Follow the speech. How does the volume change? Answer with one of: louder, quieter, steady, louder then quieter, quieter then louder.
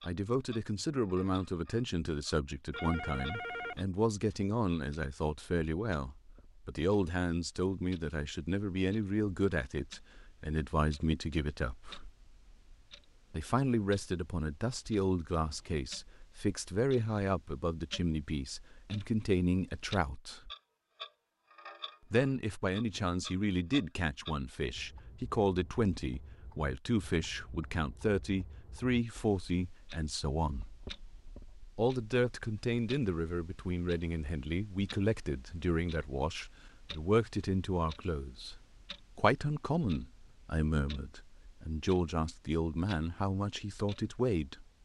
steady.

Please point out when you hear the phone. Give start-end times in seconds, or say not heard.
2.7-3.9.